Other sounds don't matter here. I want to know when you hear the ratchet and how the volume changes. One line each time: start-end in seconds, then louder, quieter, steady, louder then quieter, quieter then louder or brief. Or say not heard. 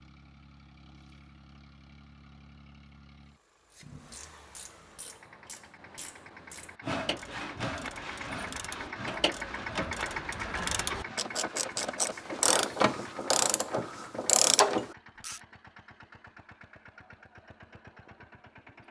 3.7-15.4 louder.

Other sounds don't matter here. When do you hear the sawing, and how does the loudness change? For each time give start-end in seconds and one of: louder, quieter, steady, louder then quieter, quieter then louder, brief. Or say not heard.
6.8-13.2 quieter.